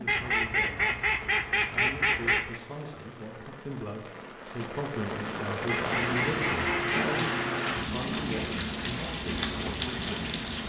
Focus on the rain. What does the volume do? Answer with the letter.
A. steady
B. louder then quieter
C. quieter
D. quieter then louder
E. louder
E.